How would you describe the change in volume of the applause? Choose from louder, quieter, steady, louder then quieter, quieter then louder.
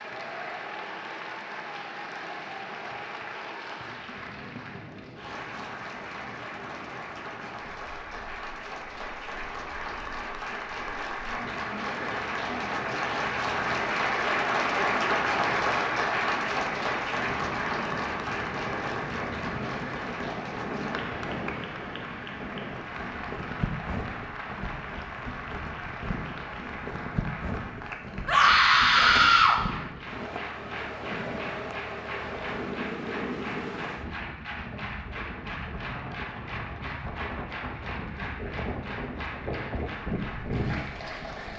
louder then quieter.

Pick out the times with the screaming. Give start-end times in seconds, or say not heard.
28.2-29.6.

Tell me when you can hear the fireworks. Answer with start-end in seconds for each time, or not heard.
not heard.